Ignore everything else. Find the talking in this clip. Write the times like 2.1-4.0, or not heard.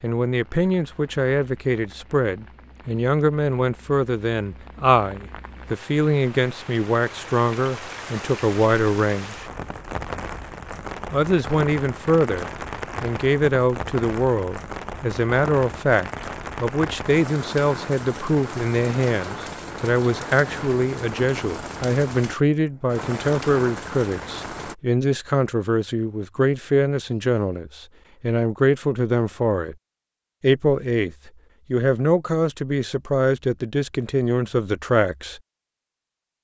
0.0-9.4, 11.1-29.8, 30.4-35.4.